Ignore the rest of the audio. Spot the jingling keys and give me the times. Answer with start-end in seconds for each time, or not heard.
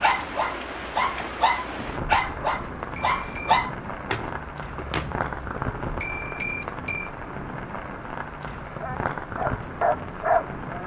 4.0-5.5.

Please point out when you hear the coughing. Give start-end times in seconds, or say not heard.
not heard.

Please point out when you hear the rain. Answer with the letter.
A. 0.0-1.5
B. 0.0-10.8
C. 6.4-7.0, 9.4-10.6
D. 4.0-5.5
B.